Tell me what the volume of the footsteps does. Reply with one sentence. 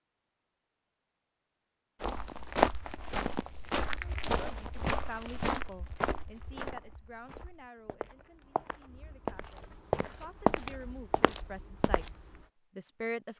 The loudness of the footsteps goes down, then up.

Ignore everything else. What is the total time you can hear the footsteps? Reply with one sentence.
You can hear the footsteps for 10 seconds altogether.